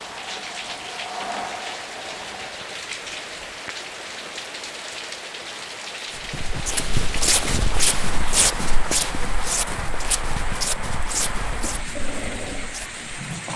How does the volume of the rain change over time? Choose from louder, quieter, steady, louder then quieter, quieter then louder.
steady.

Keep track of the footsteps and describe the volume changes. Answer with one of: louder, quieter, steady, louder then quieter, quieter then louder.
quieter.